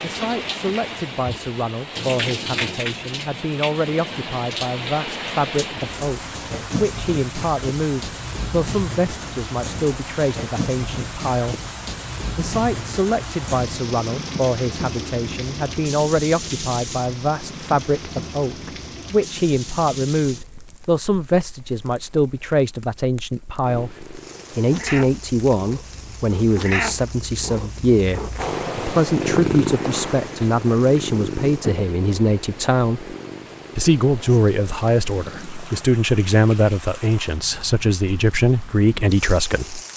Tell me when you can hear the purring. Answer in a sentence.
You can hear the purring from 23.6 to 35.9 s.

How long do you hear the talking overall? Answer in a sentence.
The talking can be heard for 38 seconds in total.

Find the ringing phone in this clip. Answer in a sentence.
You can't hear the ringing phone here.